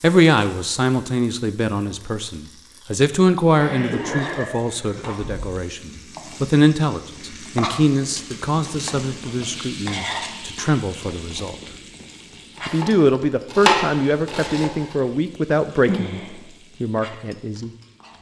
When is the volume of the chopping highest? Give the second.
14 s.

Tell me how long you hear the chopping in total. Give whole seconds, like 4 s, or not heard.
3 s.